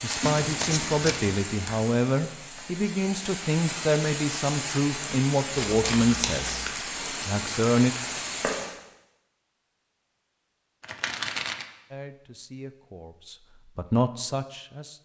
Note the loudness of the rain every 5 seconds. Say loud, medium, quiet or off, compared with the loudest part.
loud, loud, off.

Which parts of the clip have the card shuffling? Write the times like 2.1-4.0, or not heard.
0.2-1.3, 5.5-6.7, 10.8-11.7.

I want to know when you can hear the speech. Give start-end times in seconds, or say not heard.
0.0-8.0, 11.9-15.0.